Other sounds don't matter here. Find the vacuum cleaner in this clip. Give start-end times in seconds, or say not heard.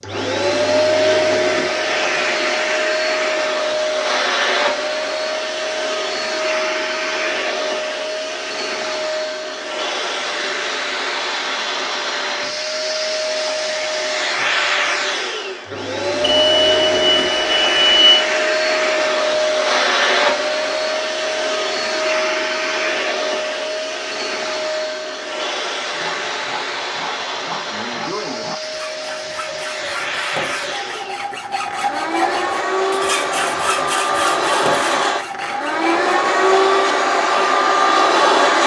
0.0-38.6.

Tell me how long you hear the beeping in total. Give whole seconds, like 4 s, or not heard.
2 s.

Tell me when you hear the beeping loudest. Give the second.
18 s.